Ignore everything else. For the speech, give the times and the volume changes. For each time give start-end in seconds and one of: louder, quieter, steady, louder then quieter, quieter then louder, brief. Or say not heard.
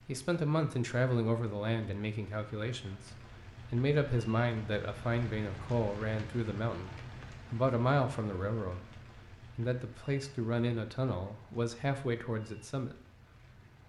0.1-12.9 steady.